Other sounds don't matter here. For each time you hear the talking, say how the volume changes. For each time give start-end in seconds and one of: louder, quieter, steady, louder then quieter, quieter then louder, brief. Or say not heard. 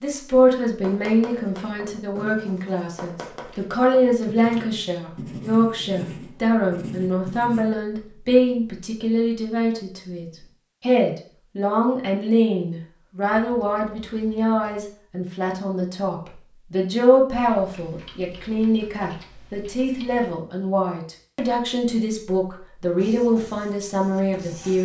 0.0-24.7 steady.